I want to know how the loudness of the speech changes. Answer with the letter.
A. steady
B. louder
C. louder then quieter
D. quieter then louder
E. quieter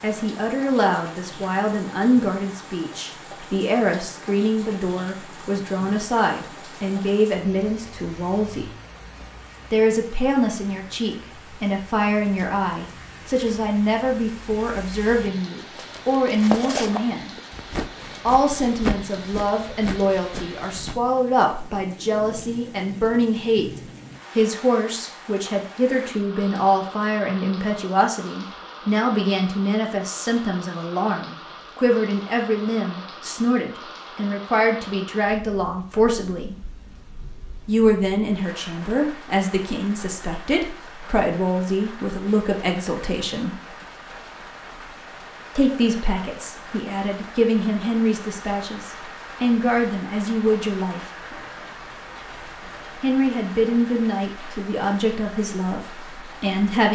A.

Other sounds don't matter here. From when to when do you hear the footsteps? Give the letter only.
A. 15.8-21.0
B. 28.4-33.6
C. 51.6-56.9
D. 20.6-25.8
A.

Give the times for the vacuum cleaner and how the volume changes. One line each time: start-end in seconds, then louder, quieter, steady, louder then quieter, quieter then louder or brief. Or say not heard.
not heard.